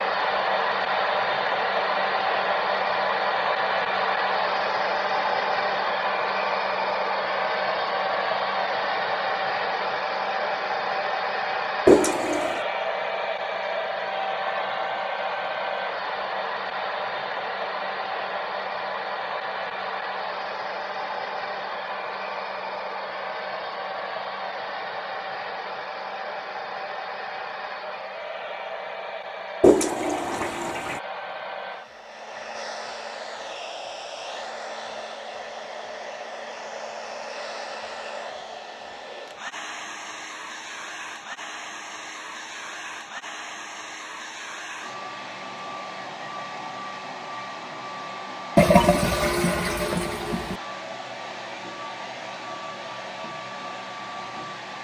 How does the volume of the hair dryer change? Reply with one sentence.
The loudness of the hair dryer goes down.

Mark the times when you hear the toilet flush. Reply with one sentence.
The toilet flush can be heard from 11.8 to 12.6 s, from 29.6 to 31.0 s and from 48.5 to 50.5 s.